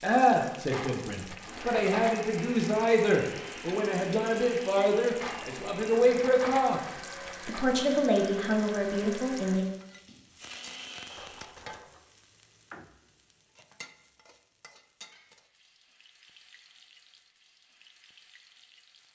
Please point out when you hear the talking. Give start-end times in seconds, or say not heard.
0.0-6.8, 7.5-9.7.